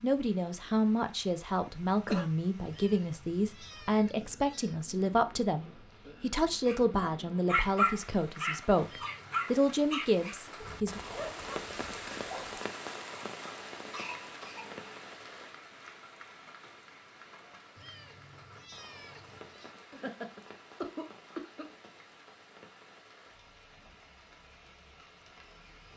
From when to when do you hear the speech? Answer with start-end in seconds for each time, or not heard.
0.0-11.0.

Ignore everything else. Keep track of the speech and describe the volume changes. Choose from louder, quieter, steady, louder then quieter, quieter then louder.
steady.